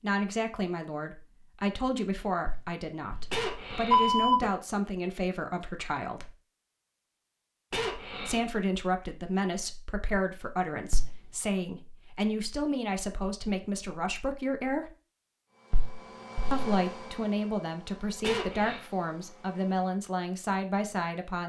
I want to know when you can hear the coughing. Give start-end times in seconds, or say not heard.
3.3-4.5, 7.7-8.5, 18.2-18.8.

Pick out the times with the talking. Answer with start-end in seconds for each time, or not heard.
0.0-6.3, 8.2-14.9, 16.5-21.4.